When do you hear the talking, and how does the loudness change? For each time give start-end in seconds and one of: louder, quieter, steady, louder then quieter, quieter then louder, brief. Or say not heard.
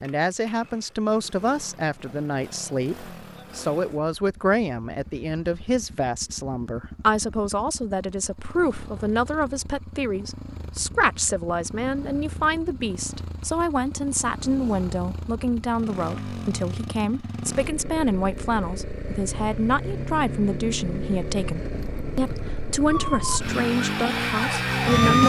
0.0-25.2 steady.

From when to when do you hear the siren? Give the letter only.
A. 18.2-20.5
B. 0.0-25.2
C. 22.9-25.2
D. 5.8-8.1
C.